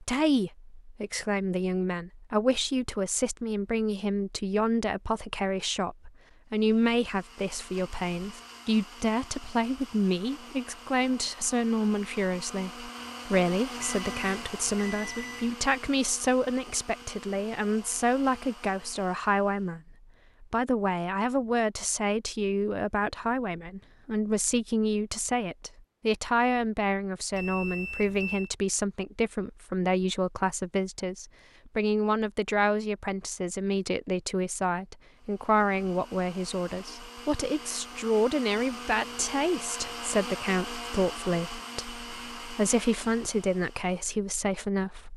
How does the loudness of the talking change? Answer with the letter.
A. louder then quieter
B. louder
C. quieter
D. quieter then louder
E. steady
E.